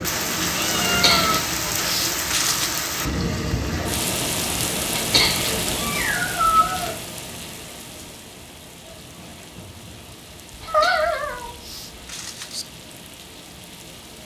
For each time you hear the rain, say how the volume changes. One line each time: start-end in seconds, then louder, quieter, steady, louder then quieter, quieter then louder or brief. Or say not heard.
0.0-14.2 quieter.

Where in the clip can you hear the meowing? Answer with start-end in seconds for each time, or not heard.
0.1-1.4, 5.1-7.0, 10.6-11.6.